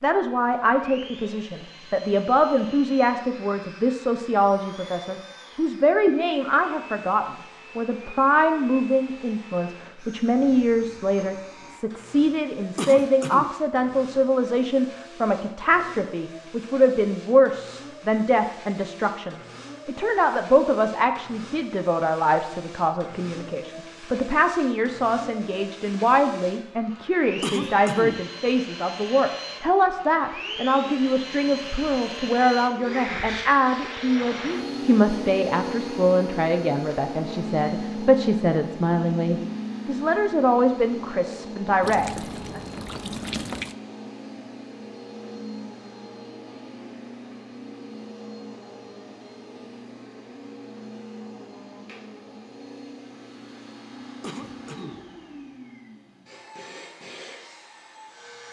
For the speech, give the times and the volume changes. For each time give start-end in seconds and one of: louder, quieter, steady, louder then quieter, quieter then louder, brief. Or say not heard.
0.0-42.6 steady.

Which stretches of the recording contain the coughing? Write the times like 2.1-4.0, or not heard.
12.8-13.5, 27.4-28.3, 54.2-55.0.